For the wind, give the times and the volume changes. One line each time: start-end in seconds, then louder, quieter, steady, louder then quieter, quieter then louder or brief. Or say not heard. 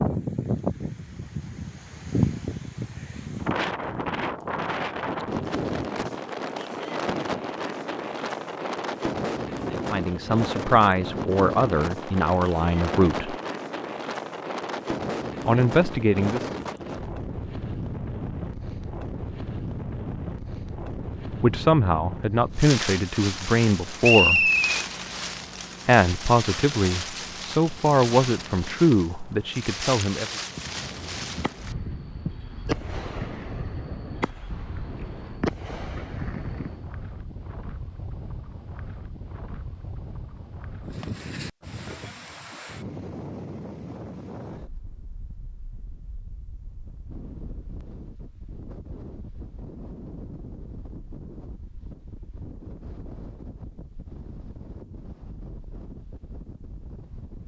0.0-57.4 quieter.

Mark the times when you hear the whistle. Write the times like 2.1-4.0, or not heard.
24.0-24.8.